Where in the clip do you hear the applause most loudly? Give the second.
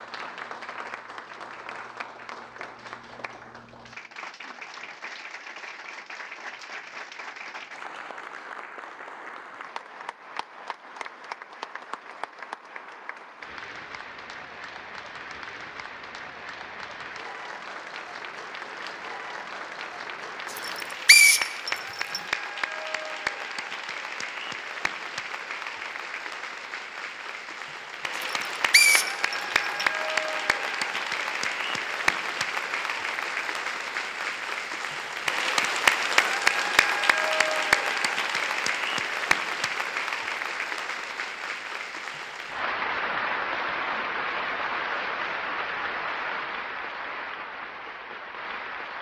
36 s.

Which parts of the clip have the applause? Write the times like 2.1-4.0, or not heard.
0.0-48.9.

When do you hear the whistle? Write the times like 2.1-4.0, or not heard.
20.6-22.2, 28.2-29.9.